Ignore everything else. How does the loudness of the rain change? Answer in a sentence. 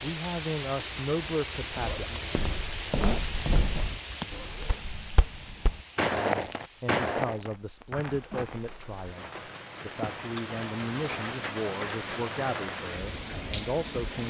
The volume of the rain goes down, then up.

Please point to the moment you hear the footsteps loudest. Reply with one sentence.
The volume of the footsteps peaks at 6 seconds.